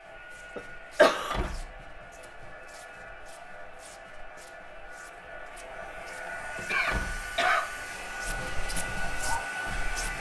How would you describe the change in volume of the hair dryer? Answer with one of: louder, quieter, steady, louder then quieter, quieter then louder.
louder.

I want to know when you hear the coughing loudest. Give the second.
1 s.